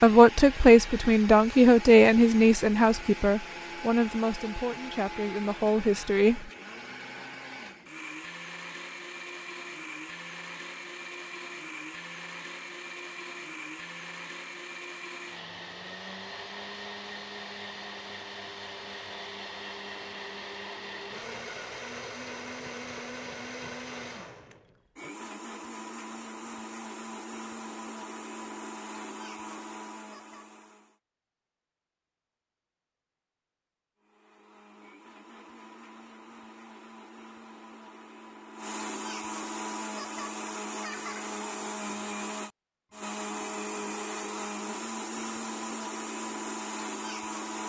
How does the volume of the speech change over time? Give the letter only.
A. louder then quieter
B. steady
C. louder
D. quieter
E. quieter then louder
D.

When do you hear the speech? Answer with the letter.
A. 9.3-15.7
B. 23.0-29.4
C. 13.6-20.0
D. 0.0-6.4
D.